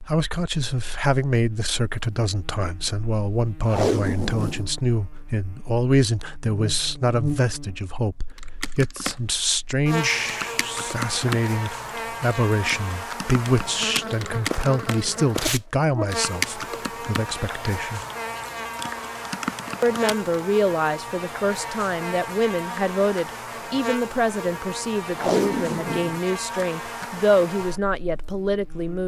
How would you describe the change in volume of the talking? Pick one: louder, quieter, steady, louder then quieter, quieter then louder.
steady.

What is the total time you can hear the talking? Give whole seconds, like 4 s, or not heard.
27 s.